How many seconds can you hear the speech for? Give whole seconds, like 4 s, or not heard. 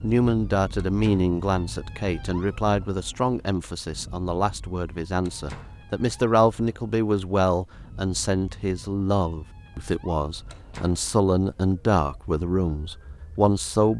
14 s.